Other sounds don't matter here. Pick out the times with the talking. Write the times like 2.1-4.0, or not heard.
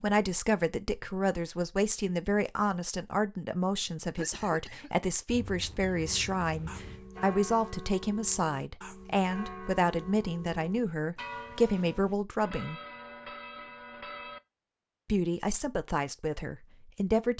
0.0-12.8, 15.1-17.3.